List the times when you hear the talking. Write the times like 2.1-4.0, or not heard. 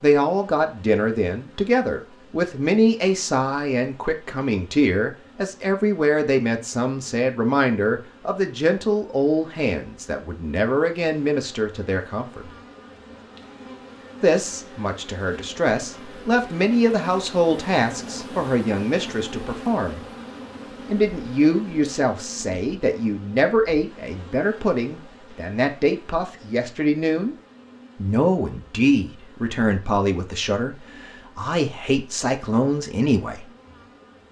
0.0-12.4, 14.2-20.0, 20.9-27.4, 27.9-33.4.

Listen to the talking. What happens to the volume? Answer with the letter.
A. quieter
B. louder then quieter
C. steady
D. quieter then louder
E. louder
C.